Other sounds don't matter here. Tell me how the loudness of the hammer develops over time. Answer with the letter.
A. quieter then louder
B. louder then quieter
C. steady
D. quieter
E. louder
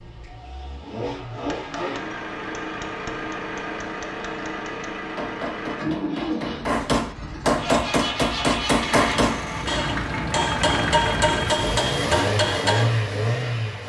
E.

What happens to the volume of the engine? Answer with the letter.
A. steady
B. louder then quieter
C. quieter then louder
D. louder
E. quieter
D.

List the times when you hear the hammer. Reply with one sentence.
You can hear the hammer from 1.4 to 12.9 s.